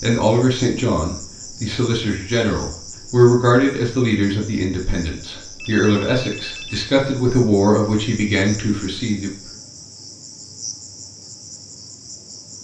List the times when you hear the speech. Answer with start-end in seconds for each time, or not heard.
0.0-9.3.